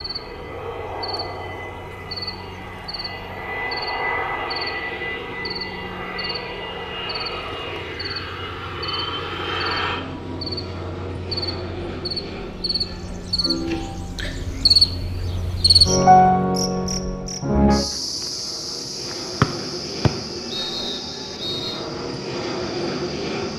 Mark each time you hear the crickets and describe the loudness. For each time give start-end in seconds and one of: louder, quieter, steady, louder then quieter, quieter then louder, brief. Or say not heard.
0.0-23.5 louder then quieter.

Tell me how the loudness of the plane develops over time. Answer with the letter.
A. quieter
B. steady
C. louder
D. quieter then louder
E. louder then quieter
D.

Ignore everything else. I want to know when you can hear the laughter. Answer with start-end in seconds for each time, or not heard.
13.3-14.3.